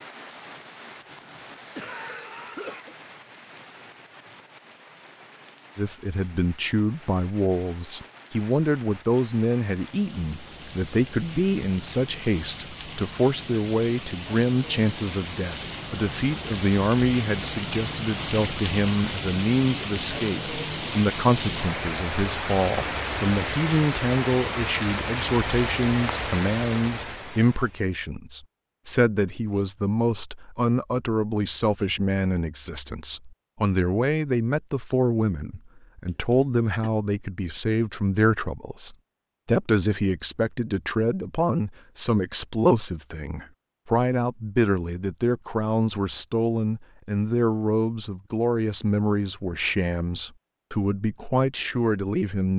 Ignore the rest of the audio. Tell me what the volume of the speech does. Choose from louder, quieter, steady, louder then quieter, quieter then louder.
steady.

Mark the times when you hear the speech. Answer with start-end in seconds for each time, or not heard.
5.8-52.5.